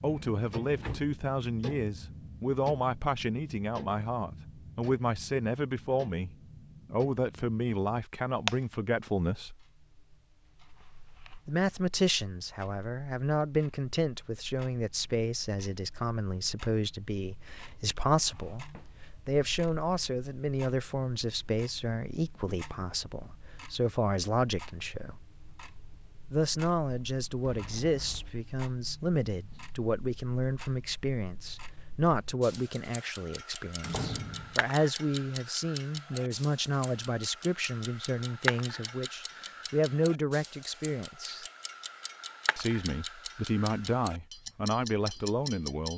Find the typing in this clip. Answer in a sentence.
You can't hear the typing here.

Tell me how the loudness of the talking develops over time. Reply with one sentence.
The loudness of the talking stays about the same.